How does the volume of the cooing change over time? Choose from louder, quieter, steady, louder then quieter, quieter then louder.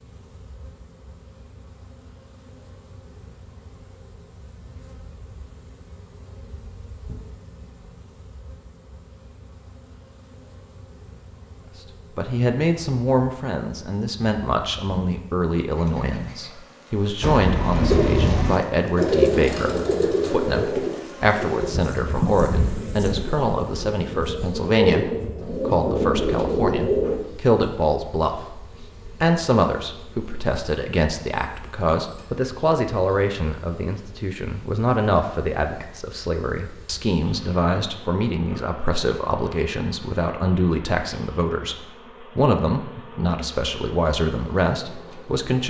quieter then louder.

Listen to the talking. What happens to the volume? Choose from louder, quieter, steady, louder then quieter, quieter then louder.
steady.